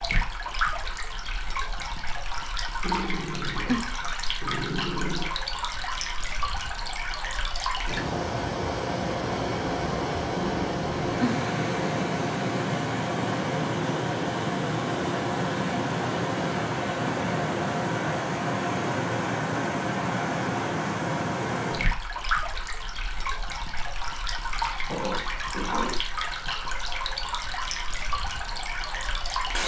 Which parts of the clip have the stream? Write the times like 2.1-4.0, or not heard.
0.0-29.6.